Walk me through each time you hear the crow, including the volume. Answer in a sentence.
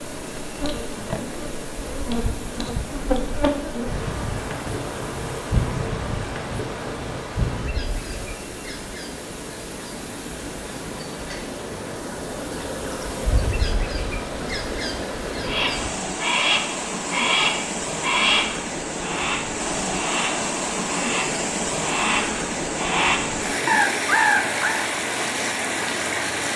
The crow can be heard from 15.4 to 24.9 s, getting quieter then louder.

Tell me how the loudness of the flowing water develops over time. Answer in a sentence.
The loudness of the flowing water goes up.